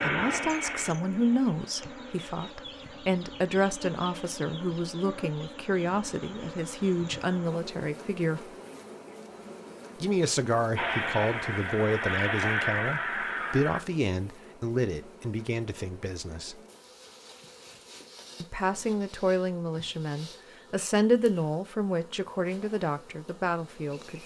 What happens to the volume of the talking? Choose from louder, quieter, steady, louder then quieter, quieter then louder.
steady.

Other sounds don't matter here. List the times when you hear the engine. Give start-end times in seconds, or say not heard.
0.0-2.5, 10.8-13.8.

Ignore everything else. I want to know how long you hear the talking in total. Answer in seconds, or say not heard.
21 s.